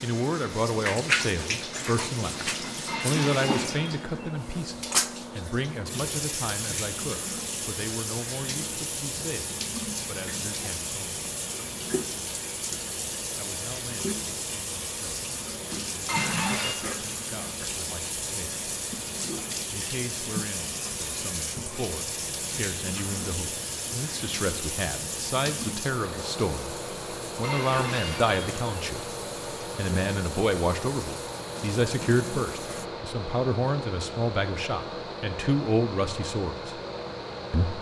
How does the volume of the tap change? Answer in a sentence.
The loudness of the tap goes down.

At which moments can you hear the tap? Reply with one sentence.
The tap can be heard from 0.0 to 32.9 s.